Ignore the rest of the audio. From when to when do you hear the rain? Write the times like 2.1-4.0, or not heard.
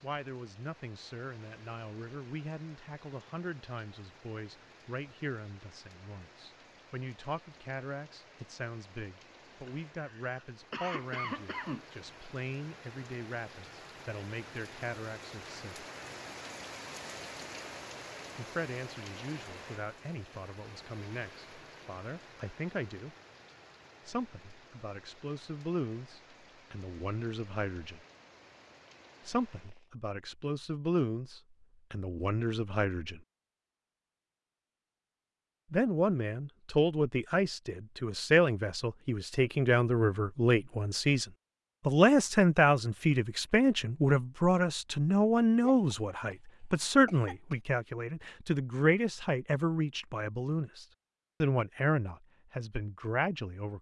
0.0-29.9.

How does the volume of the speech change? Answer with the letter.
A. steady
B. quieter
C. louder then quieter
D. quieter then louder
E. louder
E.